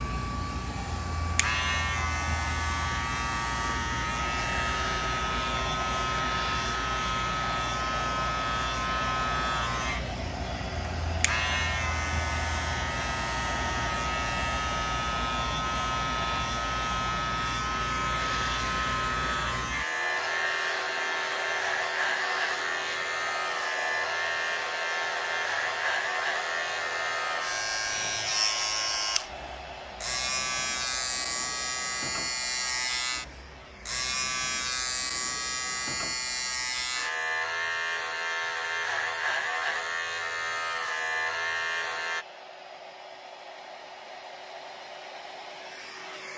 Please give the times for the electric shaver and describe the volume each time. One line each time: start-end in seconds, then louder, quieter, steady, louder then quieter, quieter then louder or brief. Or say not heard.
0.0-42.2 steady.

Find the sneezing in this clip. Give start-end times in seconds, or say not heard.
not heard.